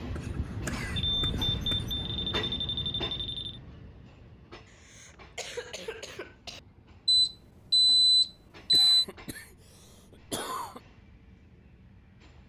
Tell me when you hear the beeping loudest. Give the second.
8 s.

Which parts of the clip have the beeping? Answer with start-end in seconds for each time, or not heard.
0.9-3.6, 7.0-8.9.